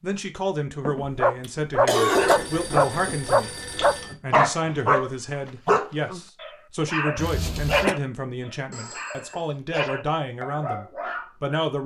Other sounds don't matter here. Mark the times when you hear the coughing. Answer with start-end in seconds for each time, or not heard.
0.8-2.4, 7.2-8.0.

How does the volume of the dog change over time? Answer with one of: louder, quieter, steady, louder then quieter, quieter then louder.
quieter.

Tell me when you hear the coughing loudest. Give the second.
2 s.